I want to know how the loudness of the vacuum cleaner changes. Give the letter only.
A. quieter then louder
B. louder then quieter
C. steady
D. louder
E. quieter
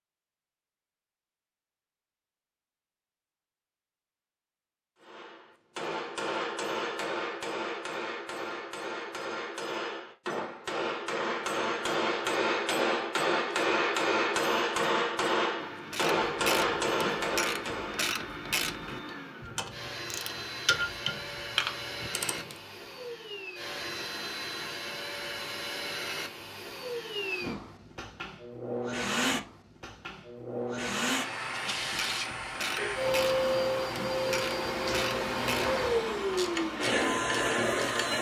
D.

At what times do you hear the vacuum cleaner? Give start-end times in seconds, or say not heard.
15.6-38.1.